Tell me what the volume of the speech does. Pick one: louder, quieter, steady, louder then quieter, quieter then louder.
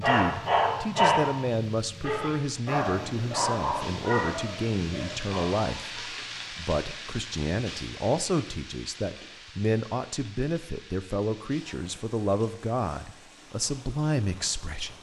steady.